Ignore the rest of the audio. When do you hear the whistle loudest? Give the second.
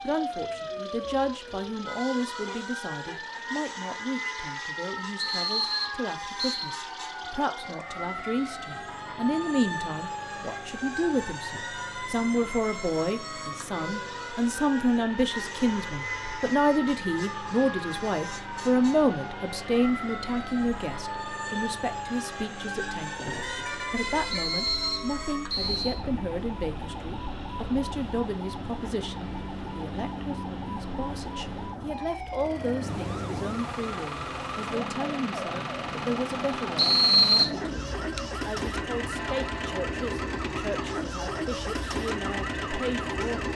37 s.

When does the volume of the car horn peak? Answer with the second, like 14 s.
24 s.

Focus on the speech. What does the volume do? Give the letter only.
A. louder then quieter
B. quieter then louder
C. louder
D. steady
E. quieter
A.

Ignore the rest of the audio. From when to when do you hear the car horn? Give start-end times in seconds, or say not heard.
2.5-3.2, 23.1-24.4, 39.1-39.8.